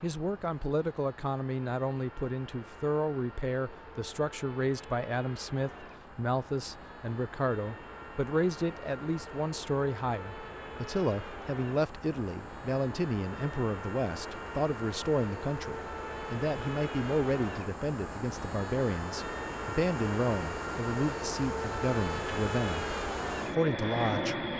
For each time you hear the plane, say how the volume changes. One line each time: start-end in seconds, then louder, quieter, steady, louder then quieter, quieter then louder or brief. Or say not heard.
0.0-24.5 louder.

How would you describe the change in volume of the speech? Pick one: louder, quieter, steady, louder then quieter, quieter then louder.
steady.